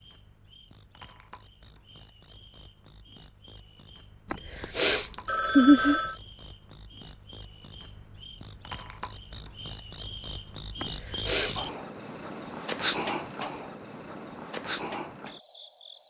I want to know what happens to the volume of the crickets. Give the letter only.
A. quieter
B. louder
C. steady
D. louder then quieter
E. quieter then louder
B.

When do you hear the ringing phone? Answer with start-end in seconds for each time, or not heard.
4.3-6.2, 10.8-11.7.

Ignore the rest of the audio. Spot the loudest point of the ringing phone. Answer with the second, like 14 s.
6 s.